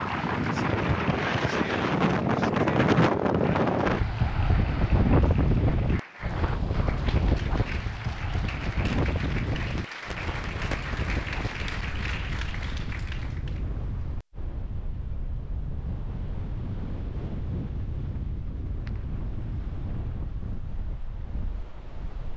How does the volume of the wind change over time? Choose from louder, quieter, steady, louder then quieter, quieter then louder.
quieter.